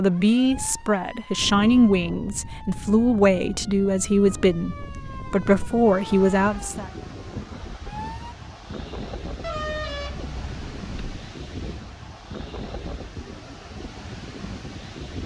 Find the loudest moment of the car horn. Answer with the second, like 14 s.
10 s.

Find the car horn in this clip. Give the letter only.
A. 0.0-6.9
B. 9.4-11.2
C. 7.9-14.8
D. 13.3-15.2
B.